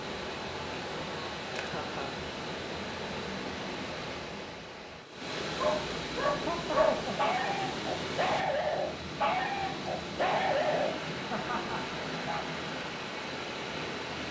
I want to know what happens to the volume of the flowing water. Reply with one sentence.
The loudness of the flowing water stays about the same.